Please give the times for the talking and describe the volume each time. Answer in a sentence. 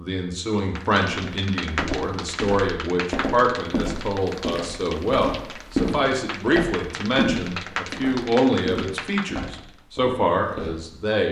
The talking can be heard from 0.0 to 11.2 s, at a steady volume.